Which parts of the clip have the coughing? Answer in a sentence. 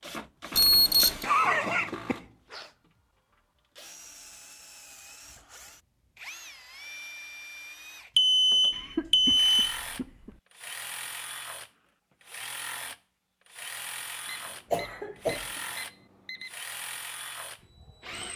You can hear the coughing from 1.2 to 2.7 s, from 8.7 to 10.3 s and from 14.7 to 15.5 s.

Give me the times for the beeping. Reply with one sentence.
You can hear the beeping from 0.6 to 1.2 s, from 8.2 to 9.8 s and from 14.2 to 16.5 s.